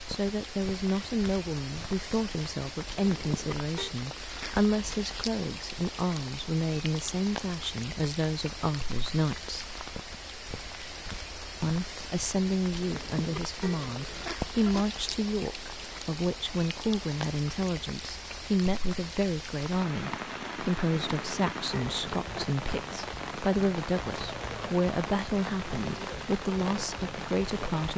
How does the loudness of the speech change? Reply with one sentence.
The volume of the speech stays about the same.